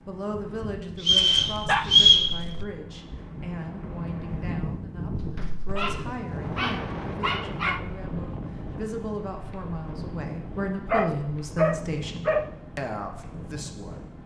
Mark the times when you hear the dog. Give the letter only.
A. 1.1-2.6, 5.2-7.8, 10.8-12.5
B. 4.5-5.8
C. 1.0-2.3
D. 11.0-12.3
A.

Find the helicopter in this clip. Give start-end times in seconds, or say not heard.
not heard.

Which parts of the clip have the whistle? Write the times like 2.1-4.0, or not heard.
1.0-2.3.